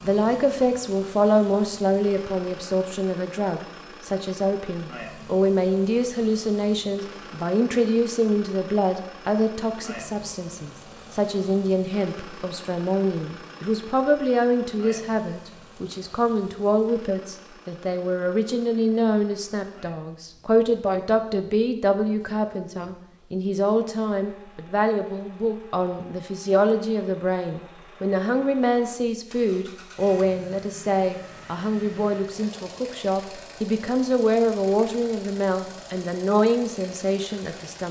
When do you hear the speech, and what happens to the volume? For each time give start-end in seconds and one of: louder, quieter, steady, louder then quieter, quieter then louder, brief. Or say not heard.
0.0-37.8 steady.